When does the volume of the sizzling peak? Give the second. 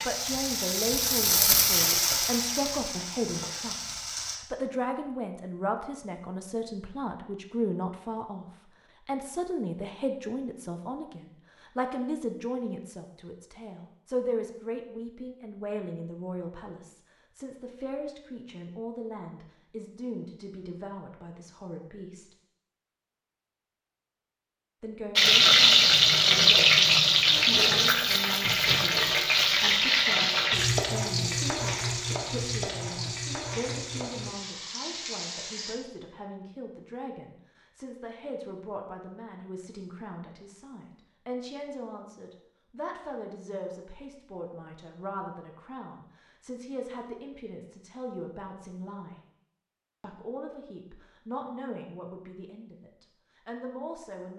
26 s.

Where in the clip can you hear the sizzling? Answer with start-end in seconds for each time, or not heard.
0.0-4.4, 25.1-35.8.